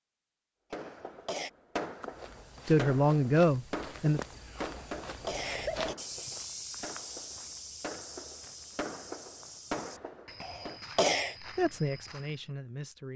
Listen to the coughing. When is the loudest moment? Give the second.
11 s.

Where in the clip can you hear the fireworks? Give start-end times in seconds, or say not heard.
0.7-10.8.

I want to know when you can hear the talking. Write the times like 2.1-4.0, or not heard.
2.6-4.2, 11.6-13.1.